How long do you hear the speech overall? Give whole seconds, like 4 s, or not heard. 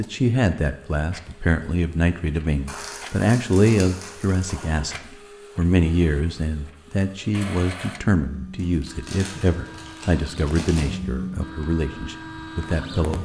13 s.